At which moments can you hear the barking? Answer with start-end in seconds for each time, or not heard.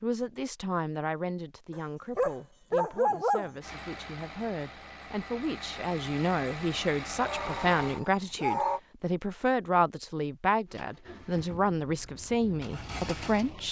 1.7-3.5, 7.2-8.8.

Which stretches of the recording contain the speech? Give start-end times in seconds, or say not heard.
0.0-13.6.